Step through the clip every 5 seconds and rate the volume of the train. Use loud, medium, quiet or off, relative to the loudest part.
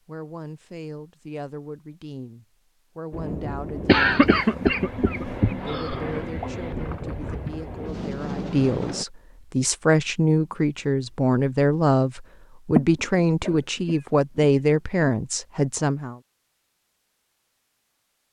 loud, loud, off, off.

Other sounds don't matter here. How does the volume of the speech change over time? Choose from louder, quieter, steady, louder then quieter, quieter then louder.
louder.